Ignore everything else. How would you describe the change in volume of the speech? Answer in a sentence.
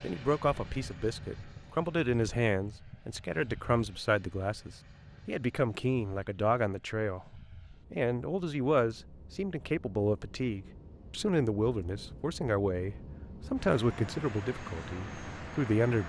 The volume of the speech stays about the same.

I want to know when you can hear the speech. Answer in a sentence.
You can hear the speech from 0.0 to 16.0 s.